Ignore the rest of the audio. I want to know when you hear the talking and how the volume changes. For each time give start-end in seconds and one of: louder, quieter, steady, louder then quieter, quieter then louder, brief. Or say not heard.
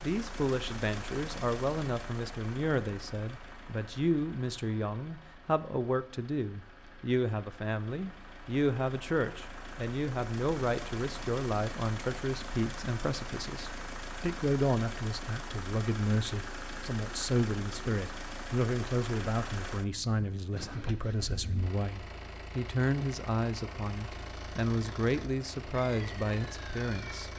0.0-27.3 steady.